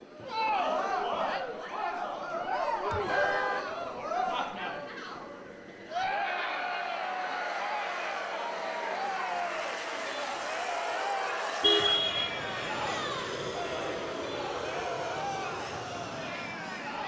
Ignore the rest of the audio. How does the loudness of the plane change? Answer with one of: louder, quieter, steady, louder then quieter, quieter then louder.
louder.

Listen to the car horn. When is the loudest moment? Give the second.
12 s.